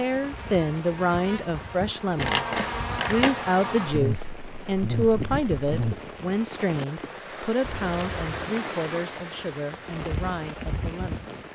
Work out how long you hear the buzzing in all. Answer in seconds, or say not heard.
6 s.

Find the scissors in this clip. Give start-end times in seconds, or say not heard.
2.1-3.4, 7.6-8.4.